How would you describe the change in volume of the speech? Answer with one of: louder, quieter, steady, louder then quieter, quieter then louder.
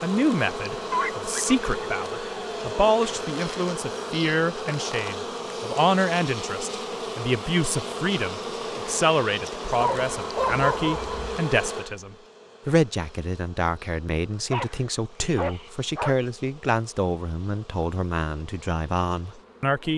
steady.